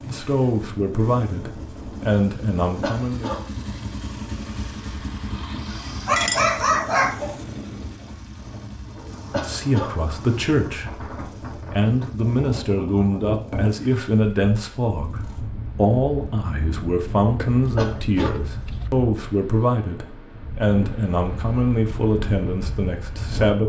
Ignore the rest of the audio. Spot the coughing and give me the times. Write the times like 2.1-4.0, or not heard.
2.8-3.4, 9.3-9.9, 17.8-18.4.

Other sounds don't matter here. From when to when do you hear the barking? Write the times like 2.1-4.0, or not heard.
6.0-7.4, 17.4-18.9.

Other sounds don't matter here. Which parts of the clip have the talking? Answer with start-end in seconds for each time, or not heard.
0.1-3.3, 9.3-23.6.